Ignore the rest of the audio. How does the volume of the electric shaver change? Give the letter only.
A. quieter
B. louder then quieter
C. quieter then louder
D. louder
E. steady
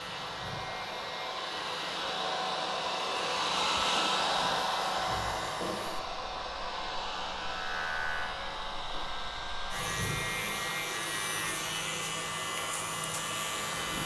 D.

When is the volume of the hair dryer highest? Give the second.
4 s.